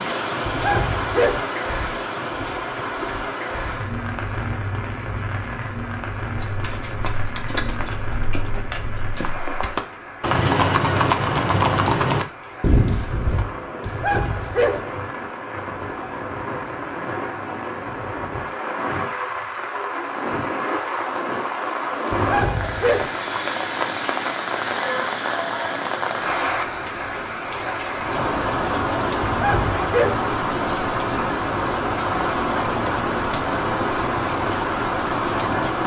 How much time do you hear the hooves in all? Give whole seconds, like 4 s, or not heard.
7 s.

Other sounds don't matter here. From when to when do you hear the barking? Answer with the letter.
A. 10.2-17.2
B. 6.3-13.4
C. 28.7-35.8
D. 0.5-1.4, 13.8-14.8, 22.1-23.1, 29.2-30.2
D.